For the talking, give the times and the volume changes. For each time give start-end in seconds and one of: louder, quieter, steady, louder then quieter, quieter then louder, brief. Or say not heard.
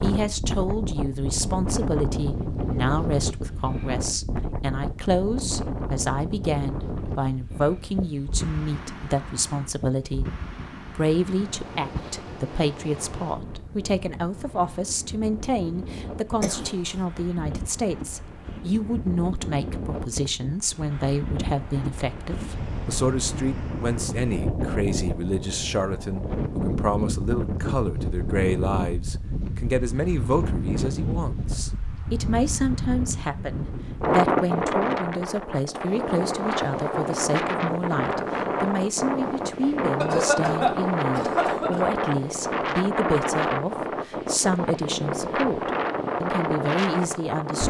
0.0-10.2 steady
10.8-47.6 steady.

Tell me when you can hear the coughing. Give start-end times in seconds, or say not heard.
16.4-17.0, 40.0-42.0.